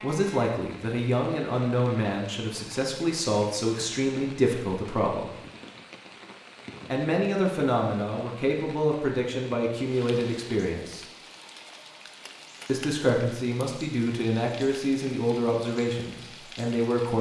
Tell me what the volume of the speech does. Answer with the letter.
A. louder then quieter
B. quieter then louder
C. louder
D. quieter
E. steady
E.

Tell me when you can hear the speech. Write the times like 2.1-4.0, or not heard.
0.0-5.3, 6.9-11.1, 12.7-17.1.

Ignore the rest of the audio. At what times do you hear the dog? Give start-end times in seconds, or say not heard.
not heard.